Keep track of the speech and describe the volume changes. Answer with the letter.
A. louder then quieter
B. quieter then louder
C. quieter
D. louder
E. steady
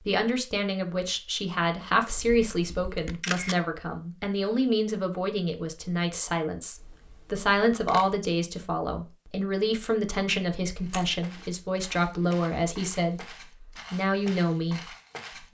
E.